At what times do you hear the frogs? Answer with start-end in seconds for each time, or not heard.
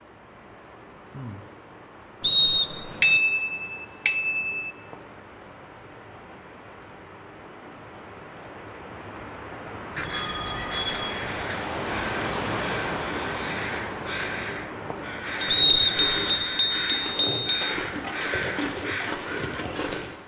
not heard.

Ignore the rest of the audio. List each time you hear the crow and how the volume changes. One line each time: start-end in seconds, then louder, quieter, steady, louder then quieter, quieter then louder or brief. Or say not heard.
10.2-20.2 louder.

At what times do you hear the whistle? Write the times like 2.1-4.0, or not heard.
2.2-3.2, 15.4-16.4.